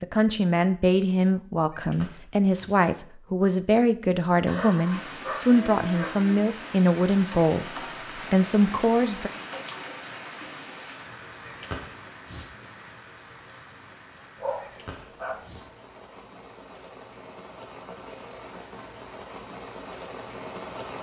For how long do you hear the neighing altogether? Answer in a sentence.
The neighing can be heard for 3 seconds in total.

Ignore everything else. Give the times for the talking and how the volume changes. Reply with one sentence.
The talking can be heard from 0.0 to 9.3 s, at a steady volume.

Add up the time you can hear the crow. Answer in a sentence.
You can't hear the crow here.